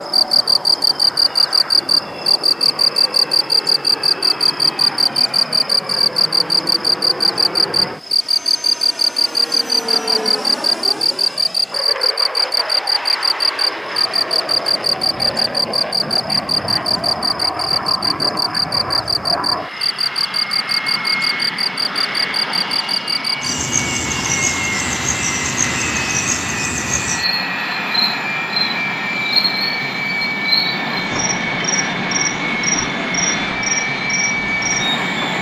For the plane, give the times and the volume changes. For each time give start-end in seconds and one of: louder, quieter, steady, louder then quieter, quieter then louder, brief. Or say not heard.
0.0-35.3 louder.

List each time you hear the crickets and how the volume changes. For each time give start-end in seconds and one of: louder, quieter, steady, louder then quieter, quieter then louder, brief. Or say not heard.
0.1-35.3 quieter.